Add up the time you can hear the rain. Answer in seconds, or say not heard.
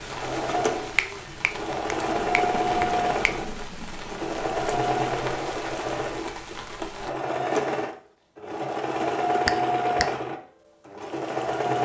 7 s.